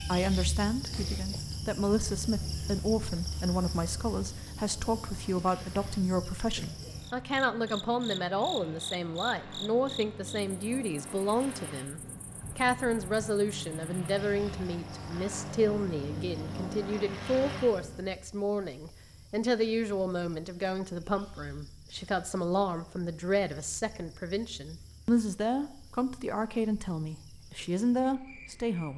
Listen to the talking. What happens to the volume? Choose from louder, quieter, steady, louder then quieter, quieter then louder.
steady.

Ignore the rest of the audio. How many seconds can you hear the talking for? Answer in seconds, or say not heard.
29 s.